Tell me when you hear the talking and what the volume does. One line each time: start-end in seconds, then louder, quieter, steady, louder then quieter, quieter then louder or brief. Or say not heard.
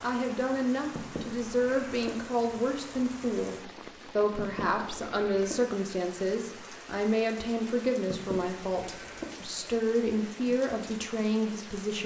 0.0-12.0 steady.